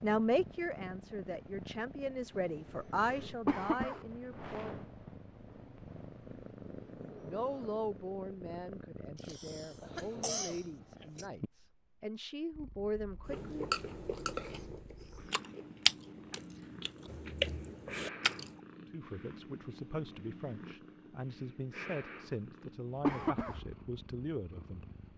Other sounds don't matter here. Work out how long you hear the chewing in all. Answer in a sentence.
You can hear the chewing for 5 seconds altogether.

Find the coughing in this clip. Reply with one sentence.
The coughing can be heard from 3.5 to 4.0 s, from 9.2 to 11.2 s and from 23.0 to 23.6 s.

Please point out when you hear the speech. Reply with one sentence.
You can hear the speech from 0.0 to 4.8 s, from 6.9 to 13.6 s and from 18.9 to 25.1 s.